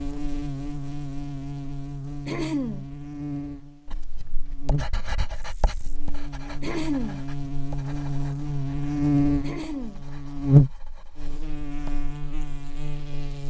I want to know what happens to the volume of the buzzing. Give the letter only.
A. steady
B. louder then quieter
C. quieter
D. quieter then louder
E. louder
E.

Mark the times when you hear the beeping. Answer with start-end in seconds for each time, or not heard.
not heard.